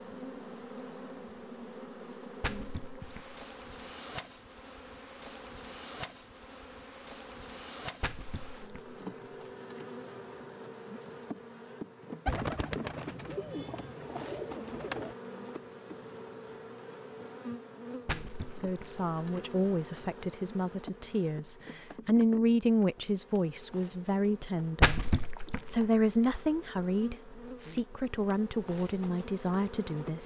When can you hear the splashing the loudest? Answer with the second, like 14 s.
25 s.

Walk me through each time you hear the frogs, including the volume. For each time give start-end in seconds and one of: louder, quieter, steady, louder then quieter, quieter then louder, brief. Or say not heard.
not heard.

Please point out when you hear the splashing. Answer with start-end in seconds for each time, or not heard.
2.4-3.4, 8.0-8.9, 18.1-19.1, 24.8-25.9.